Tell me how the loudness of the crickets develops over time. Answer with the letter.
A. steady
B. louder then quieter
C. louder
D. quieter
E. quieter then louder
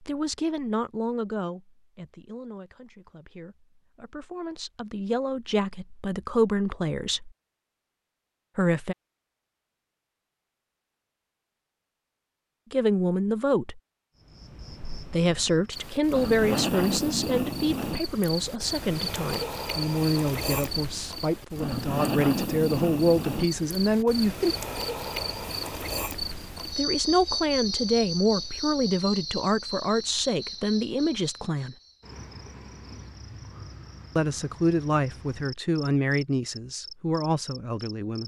D.